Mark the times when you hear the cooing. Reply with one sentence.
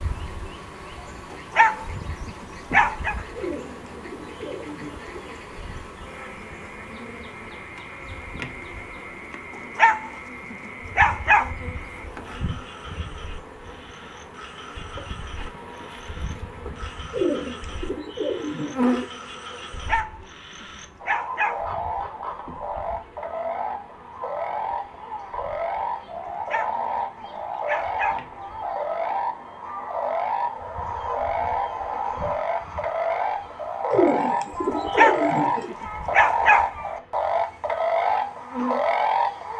You can hear the cooing from 3.4 to 5.2 s, from 17.1 to 19.1 s and from 33.9 to 35.8 s.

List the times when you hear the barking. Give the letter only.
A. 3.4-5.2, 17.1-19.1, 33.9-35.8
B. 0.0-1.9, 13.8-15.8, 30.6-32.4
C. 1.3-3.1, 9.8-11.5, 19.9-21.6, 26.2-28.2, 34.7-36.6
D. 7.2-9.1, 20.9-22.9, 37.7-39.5
C.